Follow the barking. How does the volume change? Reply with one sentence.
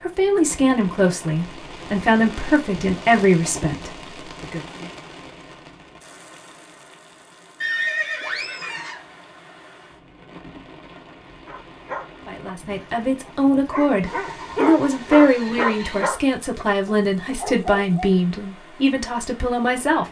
The loudness of the barking goes up, then down.